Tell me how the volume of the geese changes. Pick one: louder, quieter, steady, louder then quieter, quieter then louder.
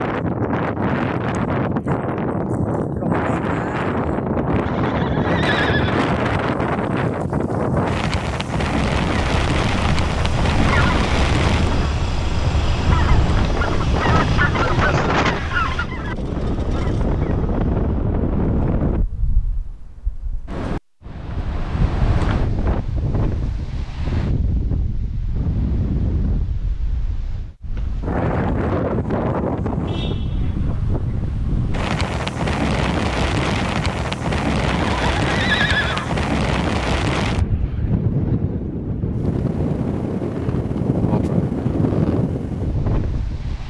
quieter.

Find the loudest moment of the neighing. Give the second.
36 s.